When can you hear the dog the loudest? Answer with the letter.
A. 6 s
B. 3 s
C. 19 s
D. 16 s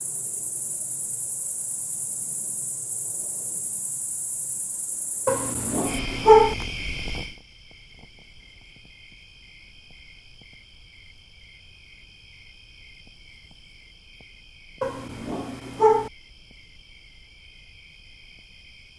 A.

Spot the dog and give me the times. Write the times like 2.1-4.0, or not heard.
5.2-6.5, 14.8-16.1.